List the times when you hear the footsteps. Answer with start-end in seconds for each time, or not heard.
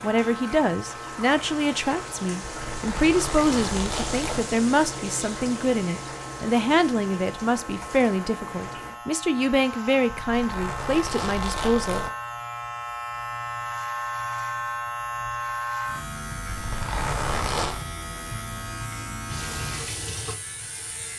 not heard.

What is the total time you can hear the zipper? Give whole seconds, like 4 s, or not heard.
5 s.